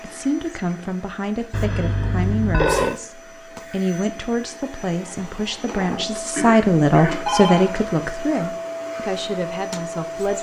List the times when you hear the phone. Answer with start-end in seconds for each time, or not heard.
1.5-3.0, 7.2-7.8.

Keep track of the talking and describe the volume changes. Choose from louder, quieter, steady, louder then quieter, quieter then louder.
louder then quieter.